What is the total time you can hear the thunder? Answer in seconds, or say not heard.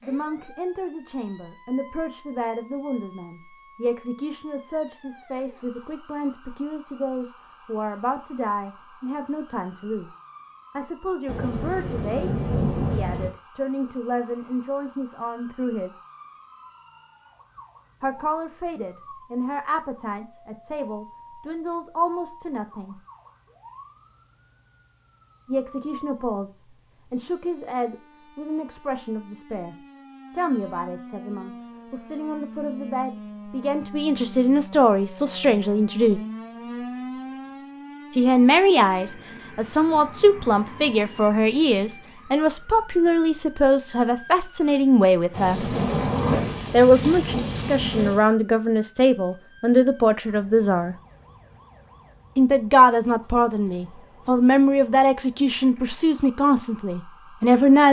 5 s.